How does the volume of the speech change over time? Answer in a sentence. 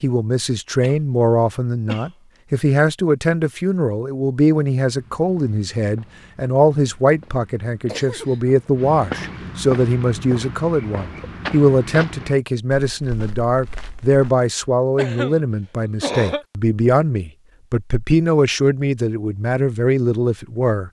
The volume of the speech stays about the same.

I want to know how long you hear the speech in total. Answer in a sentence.
The speech can be heard for 21 seconds in total.